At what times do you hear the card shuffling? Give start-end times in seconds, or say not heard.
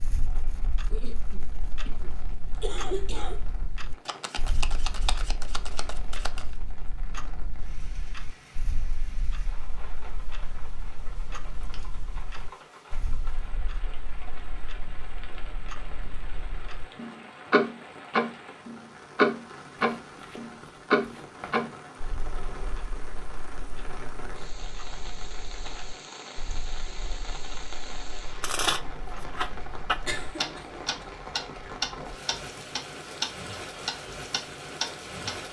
4.0-6.5, 19.8-21.7, 28.4-30.2.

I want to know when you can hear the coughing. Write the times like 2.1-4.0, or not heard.
0.9-3.4, 30.0-31.1.